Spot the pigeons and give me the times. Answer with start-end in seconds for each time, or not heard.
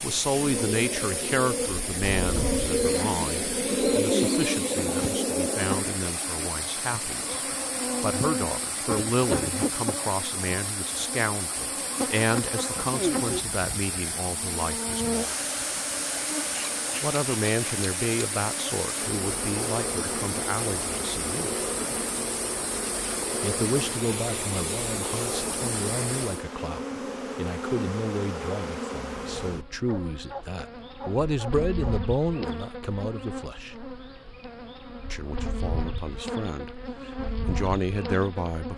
0.3-6.0.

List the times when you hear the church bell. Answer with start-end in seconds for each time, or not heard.
not heard.